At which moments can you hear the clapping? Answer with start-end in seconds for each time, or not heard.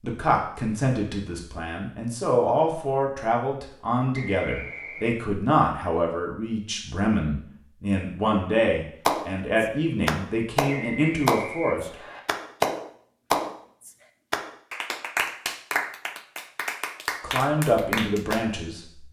9.1-18.4.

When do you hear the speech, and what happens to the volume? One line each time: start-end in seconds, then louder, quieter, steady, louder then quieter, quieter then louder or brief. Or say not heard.
0.0-11.9 steady
17.2-19.0 brief.